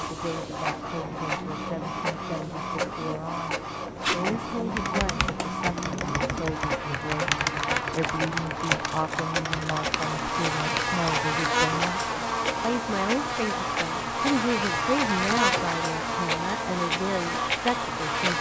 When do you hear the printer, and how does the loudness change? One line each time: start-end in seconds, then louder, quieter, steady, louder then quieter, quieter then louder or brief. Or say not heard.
0.0-18.3 steady.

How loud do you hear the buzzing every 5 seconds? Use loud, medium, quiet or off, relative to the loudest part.
medium, medium, loud, loud.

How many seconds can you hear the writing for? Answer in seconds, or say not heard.
not heard.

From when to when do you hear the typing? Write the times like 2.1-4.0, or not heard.
4.8-11.2.